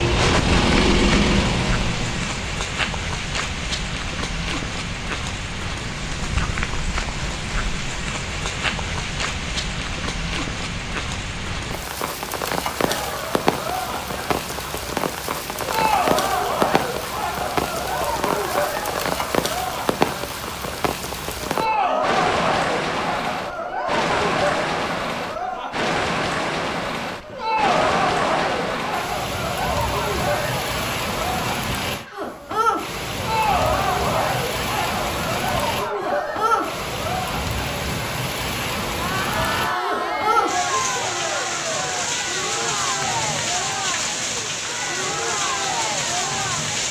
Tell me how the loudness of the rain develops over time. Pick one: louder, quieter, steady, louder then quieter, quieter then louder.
steady.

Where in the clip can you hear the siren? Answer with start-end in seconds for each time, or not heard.
not heard.